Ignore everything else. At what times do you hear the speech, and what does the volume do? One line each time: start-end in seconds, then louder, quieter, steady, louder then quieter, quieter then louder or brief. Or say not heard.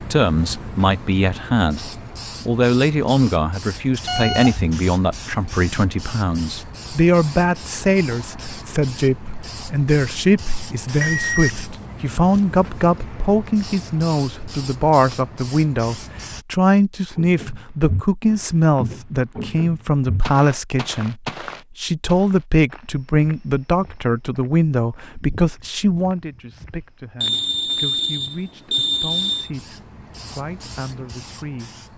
0.0-31.8 quieter.